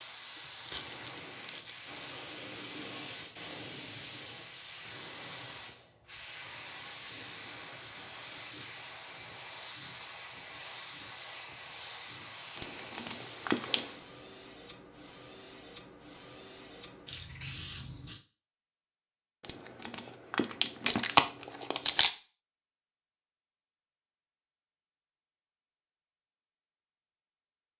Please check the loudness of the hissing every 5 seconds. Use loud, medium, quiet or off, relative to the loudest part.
loud, loud, loud, loud, off, off.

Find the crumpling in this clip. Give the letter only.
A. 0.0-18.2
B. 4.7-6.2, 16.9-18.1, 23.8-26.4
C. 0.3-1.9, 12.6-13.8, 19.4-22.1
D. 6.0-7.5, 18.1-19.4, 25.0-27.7
C.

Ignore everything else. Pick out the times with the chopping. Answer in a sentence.
The chopping can't be heard in this clip.